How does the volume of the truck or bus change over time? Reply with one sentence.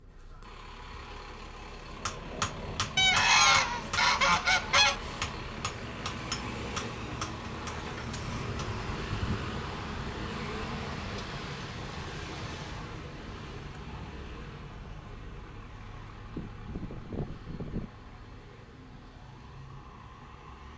The loudness of the truck or bus goes up, then down.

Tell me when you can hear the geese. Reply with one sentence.
You can hear the geese from 3.0 to 5.0 s and from 16.4 to 17.9 s.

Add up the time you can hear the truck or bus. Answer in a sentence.
You can hear the truck or bus for 21 seconds altogether.